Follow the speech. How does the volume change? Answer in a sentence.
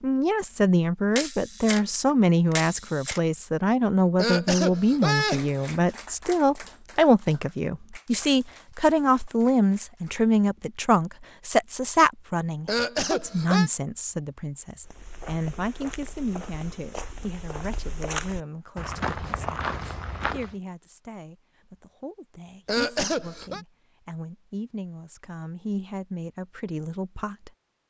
The volume of the speech goes down.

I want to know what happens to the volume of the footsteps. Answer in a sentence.
The loudness of the footsteps goes up.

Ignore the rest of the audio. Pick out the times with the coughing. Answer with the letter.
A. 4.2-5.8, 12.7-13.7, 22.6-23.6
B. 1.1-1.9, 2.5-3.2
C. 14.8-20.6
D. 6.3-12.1
A.